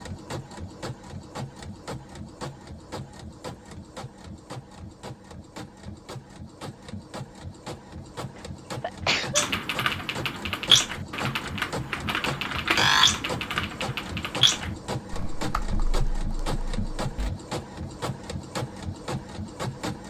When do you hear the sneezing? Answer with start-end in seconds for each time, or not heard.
8.3-9.4.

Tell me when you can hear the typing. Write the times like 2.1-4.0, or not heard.
9.3-17.3.